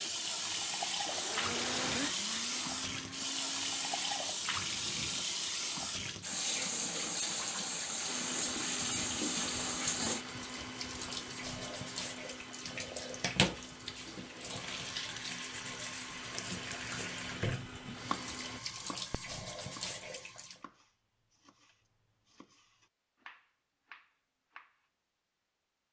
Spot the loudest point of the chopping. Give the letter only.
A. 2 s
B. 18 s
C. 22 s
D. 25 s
B.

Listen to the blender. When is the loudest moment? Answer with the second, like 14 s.
2 s.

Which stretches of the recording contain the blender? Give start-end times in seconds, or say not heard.
0.0-4.3, 8.1-18.6.